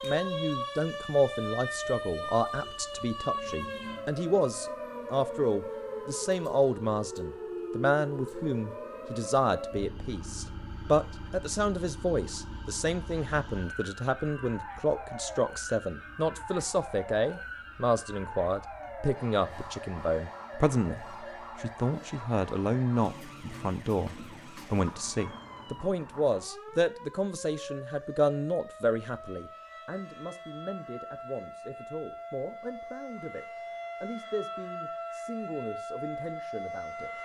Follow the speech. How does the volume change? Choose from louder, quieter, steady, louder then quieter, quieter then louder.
quieter.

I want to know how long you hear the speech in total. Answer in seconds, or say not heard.
37 s.